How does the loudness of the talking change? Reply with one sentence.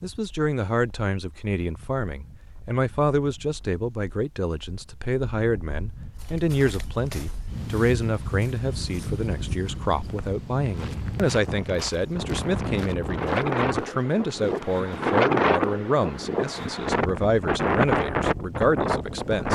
The loudness of the talking stays about the same.